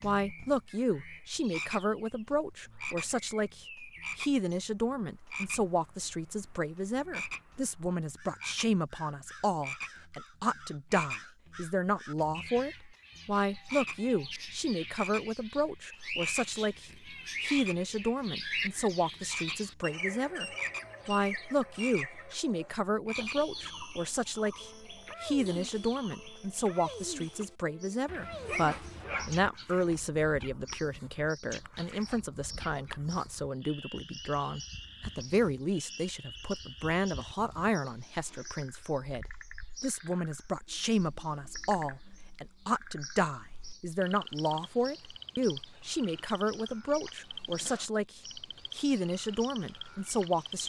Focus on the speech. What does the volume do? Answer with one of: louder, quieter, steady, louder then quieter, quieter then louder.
steady.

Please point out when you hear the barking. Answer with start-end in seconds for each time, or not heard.
28.1-29.5.